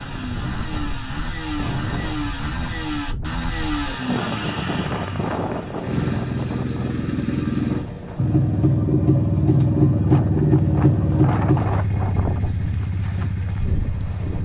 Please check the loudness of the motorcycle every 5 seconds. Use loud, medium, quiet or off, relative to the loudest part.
medium, loud, loud.